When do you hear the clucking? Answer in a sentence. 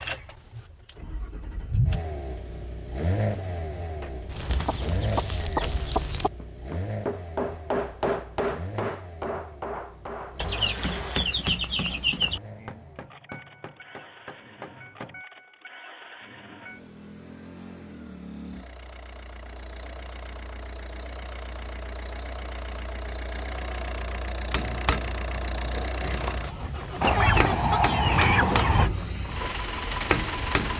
You can hear the clucking from 4.2 to 6.3 s, from 10.3 to 12.4 s and from 27.0 to 28.9 s.